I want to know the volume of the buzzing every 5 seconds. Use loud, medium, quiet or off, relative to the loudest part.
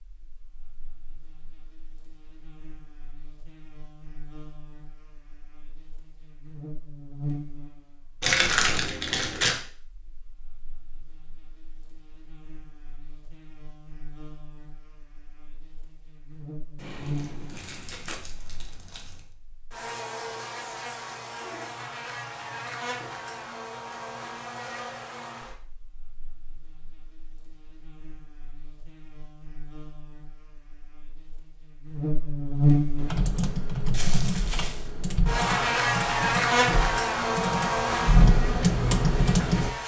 quiet, quiet, quiet, quiet, medium, quiet, loud, loud.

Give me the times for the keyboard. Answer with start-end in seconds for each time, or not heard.
33.0-39.7.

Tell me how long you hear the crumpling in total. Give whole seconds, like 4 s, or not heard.
5 s.